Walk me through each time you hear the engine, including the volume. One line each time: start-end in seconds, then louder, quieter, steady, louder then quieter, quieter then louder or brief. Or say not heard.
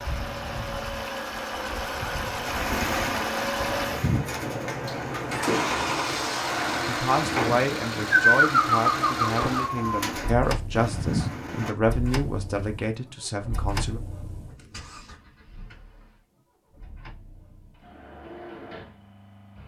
0.0-19.6 quieter.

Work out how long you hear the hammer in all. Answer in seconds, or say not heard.
not heard.